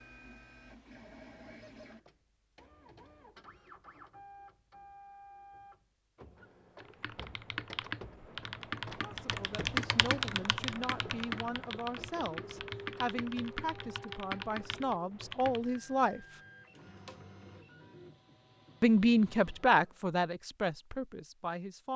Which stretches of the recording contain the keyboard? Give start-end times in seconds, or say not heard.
6.8-15.8.